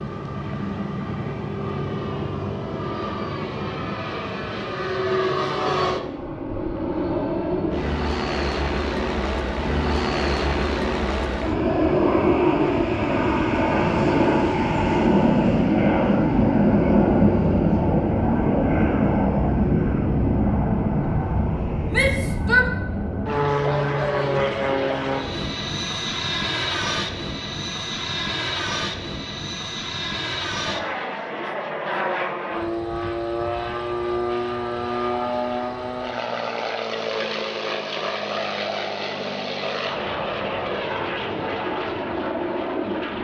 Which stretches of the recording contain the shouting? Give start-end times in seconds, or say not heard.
21.9-22.6.